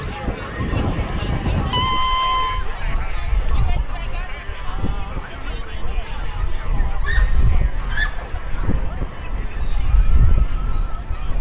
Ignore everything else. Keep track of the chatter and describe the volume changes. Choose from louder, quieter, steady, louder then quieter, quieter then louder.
quieter.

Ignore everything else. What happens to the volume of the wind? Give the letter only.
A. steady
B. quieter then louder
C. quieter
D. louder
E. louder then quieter
B.